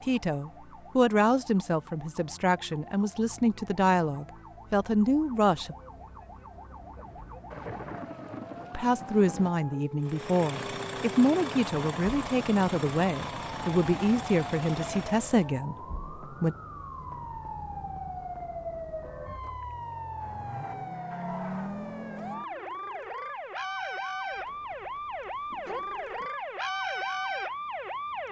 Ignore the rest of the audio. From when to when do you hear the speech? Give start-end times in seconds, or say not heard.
0.0-5.8, 8.7-16.6.